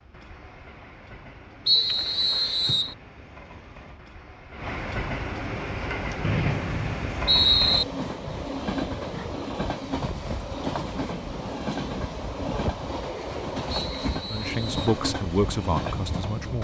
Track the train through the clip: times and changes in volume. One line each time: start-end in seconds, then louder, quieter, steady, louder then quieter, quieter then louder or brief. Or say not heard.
0.0-16.6 louder.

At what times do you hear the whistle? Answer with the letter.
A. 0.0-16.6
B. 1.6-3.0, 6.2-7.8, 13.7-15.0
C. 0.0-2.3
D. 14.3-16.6
B.